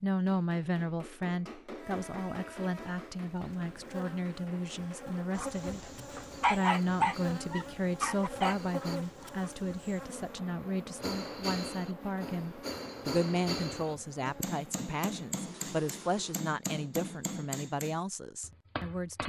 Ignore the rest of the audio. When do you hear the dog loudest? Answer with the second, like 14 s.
7 s.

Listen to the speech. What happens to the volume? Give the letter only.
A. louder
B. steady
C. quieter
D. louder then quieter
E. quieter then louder
B.